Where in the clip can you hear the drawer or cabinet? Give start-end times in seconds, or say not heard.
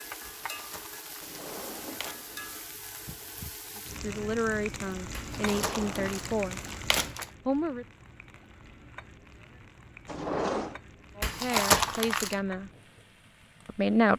1.2-2.6, 5.3-6.4, 10.1-10.8.